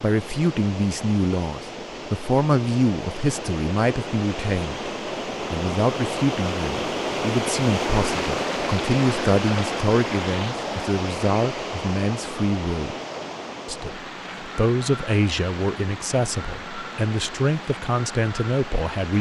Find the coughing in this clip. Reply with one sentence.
You can't hear the coughing here.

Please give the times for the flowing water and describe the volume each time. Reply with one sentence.
The flowing water can be heard from 0.0 to 19.1 s, getting louder then quieter.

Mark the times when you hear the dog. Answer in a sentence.
The dog can't be heard in this clip.